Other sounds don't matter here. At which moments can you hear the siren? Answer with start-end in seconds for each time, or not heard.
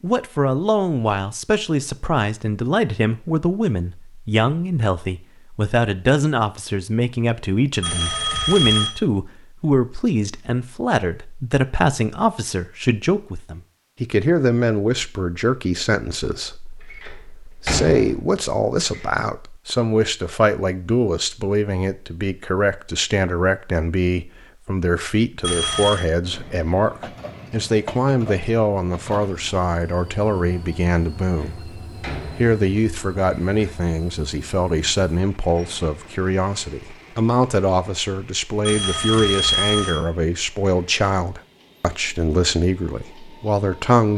not heard.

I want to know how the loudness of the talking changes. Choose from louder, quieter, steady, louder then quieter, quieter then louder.
steady.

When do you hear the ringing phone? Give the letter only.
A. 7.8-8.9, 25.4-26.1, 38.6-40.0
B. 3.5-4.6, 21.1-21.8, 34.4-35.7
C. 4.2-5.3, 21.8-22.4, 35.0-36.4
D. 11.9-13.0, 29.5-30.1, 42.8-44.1
A.